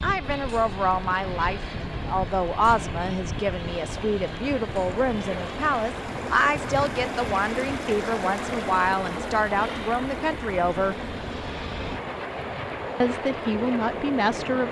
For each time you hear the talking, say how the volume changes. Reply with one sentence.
The talking can be heard from 0.0 to 10.9 s, at a steady volume; and briefly from 13.0 to 14.6 s.